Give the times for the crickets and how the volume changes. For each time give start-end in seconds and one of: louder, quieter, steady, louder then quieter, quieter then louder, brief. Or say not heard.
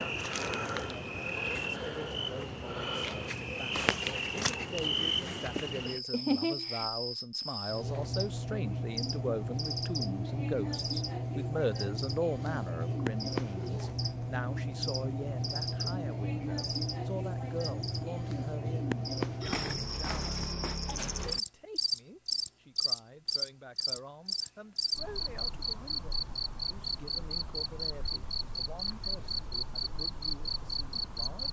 0.0-31.4 steady.